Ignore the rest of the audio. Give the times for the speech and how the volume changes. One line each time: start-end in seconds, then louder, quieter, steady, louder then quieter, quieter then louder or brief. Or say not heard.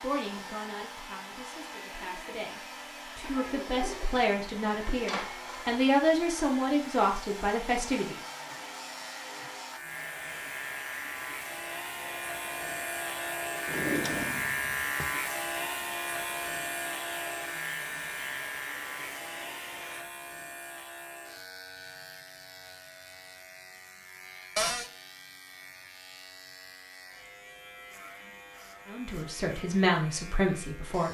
0.0-8.2 louder
28.9-31.0 brief.